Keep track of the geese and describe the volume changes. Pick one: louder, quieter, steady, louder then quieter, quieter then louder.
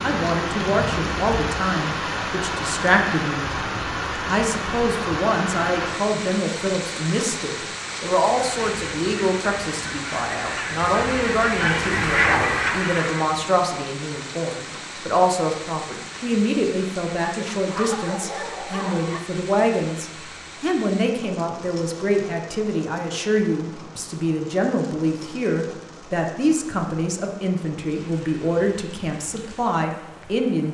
louder.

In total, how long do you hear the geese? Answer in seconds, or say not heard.
5 s.